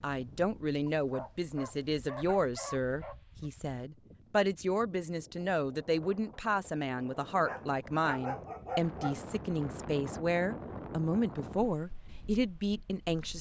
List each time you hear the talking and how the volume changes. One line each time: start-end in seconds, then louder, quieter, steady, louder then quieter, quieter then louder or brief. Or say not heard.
0.0-13.3 steady.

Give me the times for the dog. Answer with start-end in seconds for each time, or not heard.
0.8-3.5, 7.4-9.2.